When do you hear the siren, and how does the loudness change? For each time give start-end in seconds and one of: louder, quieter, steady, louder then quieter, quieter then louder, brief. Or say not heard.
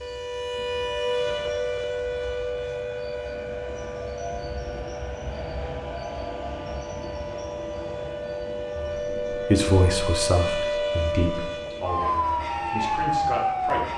0.0-13.9 quieter then louder.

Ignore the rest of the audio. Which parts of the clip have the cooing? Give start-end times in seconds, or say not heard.
not heard.